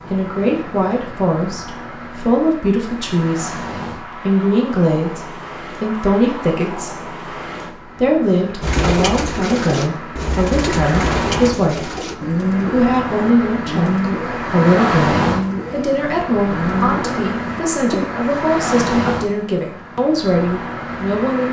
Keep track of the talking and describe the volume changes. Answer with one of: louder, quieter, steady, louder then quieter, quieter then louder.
steady.